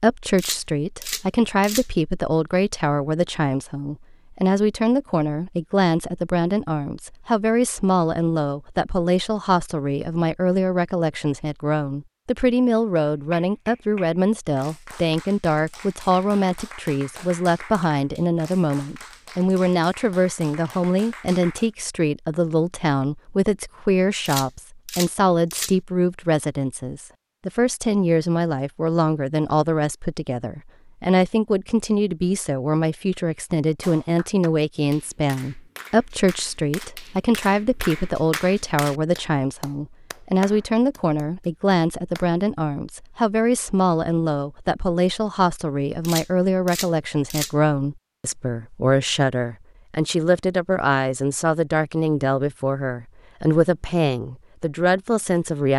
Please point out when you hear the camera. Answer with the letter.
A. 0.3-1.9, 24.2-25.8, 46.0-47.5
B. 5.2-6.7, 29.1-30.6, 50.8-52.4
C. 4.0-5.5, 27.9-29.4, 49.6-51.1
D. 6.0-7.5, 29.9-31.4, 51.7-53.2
A.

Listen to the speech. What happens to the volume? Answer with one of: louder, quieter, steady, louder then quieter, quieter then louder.
steady.